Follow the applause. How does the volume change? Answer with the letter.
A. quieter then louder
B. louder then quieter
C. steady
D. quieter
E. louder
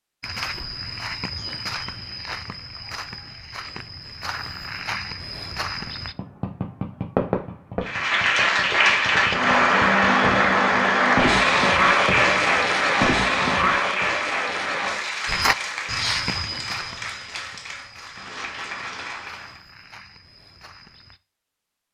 D.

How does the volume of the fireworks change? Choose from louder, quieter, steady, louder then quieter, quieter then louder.
quieter then louder.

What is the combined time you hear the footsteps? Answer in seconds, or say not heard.
12 s.